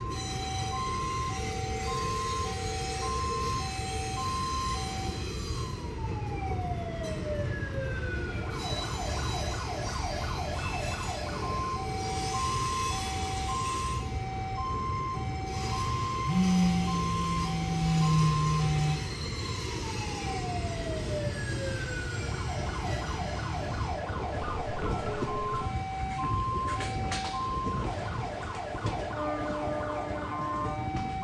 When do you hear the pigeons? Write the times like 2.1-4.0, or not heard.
not heard.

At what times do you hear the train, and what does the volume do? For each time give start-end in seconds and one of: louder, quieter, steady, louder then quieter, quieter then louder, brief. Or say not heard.
0.0-31.1 steady.